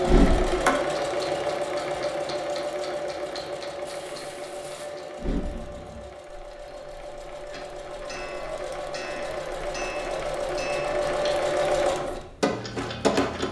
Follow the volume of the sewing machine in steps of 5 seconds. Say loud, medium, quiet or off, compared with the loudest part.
loud, medium, loud.